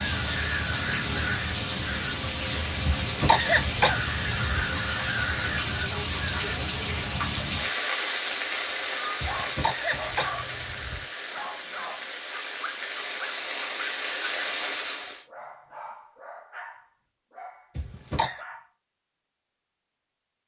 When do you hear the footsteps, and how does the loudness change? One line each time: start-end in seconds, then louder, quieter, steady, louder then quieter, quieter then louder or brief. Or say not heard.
not heard.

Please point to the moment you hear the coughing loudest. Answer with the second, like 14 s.
3 s.